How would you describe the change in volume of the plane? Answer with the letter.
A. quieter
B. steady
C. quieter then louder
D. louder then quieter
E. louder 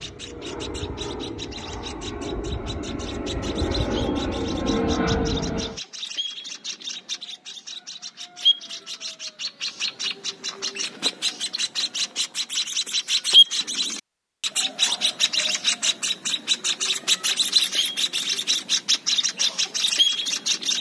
E.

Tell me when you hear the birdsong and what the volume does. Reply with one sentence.
You can hear the birdsong from 0.0 to 20.7 s, getting louder.